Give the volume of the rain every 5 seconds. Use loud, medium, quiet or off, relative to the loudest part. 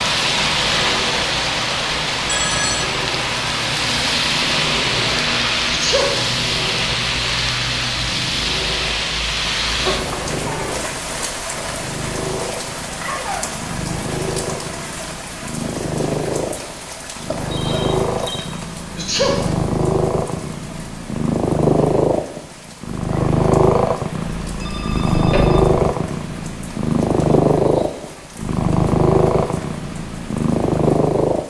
loud, loud, medium, quiet, quiet, quiet, quiet.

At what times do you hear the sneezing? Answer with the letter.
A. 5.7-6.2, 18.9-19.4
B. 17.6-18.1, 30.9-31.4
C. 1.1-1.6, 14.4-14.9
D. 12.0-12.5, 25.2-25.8
A.